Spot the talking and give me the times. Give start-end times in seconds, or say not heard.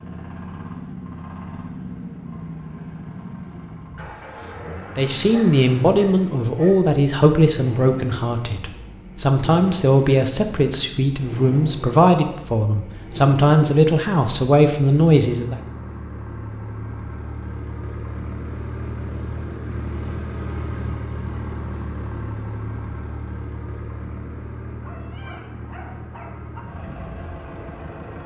5.0-15.6.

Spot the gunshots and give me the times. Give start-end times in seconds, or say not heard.
not heard.